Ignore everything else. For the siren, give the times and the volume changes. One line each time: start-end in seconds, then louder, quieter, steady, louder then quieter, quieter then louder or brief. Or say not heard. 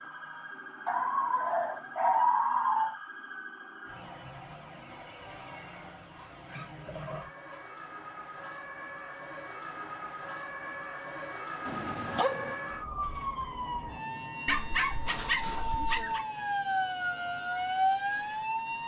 0.0-18.8 louder.